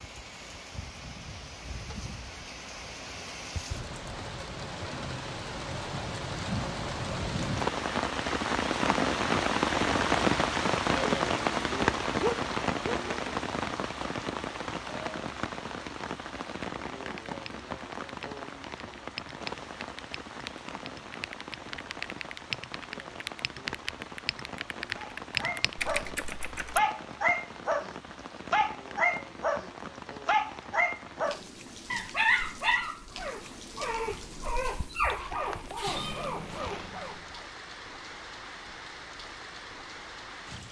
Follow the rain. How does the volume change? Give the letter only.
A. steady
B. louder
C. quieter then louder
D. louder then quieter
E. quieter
D.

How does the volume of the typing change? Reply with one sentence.
The loudness of the typing goes up.